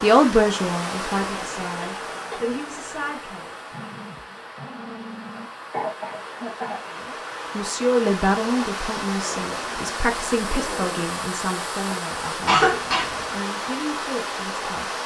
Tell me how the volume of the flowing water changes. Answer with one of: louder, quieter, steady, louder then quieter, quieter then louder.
quieter then louder.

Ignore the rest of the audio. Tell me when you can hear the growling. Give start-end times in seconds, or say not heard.
3.7-5.5, 9.2-11.1.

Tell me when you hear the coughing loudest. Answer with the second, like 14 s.
13 s.